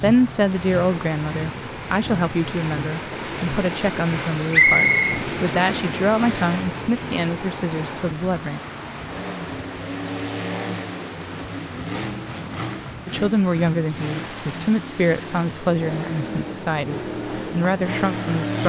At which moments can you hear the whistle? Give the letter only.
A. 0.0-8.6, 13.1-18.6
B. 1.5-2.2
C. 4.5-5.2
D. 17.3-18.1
C.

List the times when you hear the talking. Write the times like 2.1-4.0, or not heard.
0.0-8.6, 13.1-18.6.